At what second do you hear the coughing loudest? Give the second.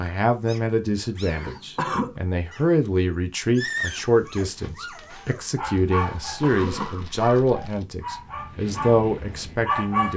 2 s.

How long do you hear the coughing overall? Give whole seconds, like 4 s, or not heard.
2 s.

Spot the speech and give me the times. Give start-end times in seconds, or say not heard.
0.0-10.1.